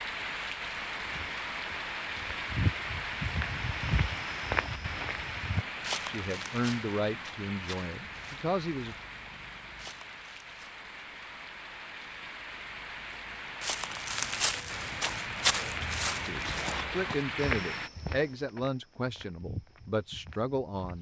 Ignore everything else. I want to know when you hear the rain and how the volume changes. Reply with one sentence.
You can hear the rain from 0.0 to 17.9 s, getting quieter then louder.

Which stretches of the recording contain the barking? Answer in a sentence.
The barking can't be heard in this clip.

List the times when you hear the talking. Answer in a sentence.
The talking can be heard from 6.0 to 8.9 s and from 16.2 to 20.9 s.